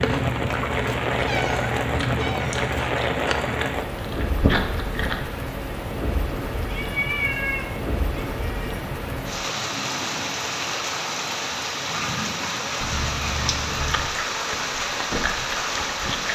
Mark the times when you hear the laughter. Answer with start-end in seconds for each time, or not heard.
not heard.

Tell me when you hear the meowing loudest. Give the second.
7 s.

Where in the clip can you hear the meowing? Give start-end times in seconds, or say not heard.
1.1-2.6, 6.7-8.8, 12.8-14.1.